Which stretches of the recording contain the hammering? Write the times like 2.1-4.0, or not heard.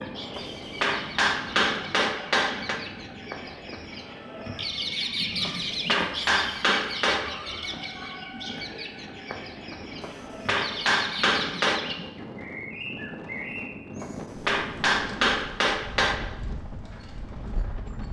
0.3-2.8, 5.4-7.3, 10.0-11.8, 14.0-16.2.